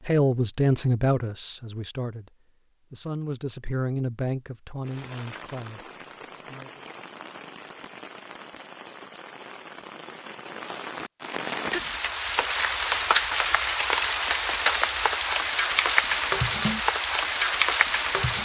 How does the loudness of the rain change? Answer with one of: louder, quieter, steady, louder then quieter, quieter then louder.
louder.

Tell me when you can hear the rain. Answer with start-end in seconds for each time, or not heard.
4.8-18.4.